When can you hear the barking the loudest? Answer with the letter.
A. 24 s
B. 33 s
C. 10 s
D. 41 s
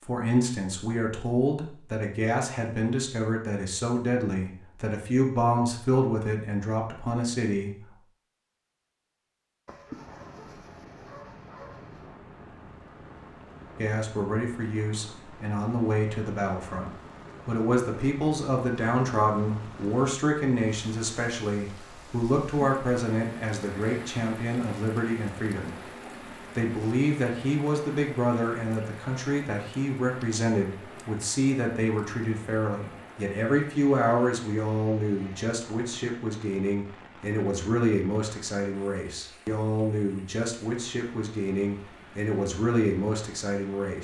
C.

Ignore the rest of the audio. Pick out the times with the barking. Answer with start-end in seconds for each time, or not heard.
9.7-12.2.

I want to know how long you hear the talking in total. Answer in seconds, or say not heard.
37 s.